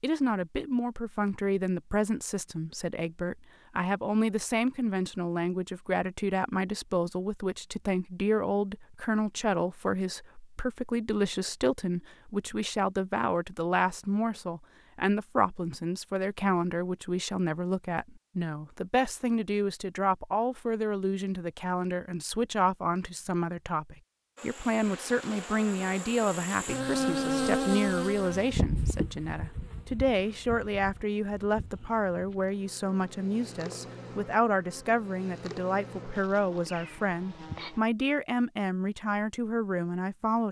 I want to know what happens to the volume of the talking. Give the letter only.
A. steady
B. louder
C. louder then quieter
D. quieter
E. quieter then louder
A.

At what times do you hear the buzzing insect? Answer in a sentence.
The buzzing insect can be heard from 24.4 to 37.8 s.